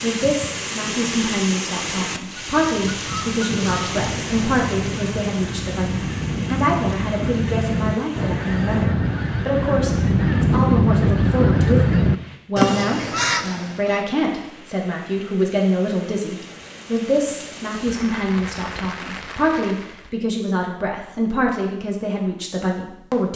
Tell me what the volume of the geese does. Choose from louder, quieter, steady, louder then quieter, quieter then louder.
louder.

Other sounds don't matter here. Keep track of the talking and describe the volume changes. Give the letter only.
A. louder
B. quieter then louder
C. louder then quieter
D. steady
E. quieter
D.